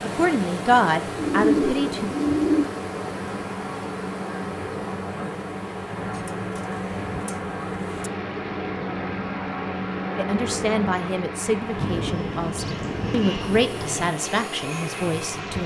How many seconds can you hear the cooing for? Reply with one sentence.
The cooing can be heard for 6 seconds in total.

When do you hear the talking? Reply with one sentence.
You can hear the talking from 0.0 to 2.1 s and from 10.2 to 15.6 s.